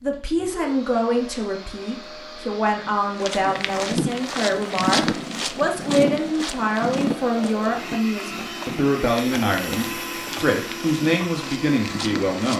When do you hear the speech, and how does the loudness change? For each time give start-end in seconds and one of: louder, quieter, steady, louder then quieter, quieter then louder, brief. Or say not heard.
0.0-12.5 steady.